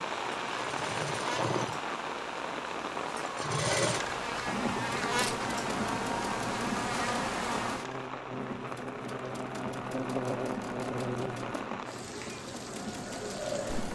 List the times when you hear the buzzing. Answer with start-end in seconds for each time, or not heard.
0.0-11.6.